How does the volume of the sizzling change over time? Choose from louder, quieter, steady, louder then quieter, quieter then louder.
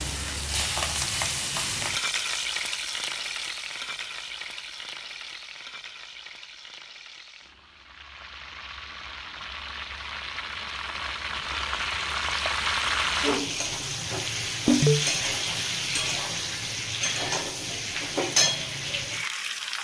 quieter then louder.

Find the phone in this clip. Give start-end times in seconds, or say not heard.
14.7-15.1.